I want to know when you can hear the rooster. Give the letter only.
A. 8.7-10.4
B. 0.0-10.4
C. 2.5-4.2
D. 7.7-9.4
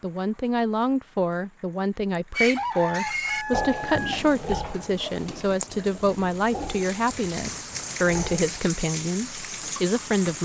C.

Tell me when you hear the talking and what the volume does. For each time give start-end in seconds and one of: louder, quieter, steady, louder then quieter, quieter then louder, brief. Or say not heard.
0.0-10.4 steady.